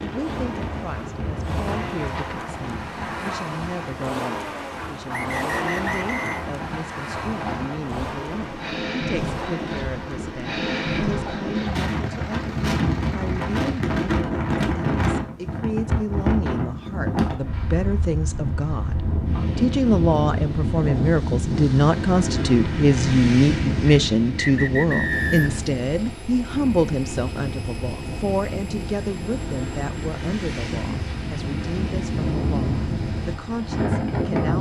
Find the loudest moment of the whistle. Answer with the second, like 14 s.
25 s.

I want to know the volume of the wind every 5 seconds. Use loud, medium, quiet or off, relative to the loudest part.
medium, medium, loud, loud, loud, medium, loud.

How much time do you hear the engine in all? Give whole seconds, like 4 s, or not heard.
24 s.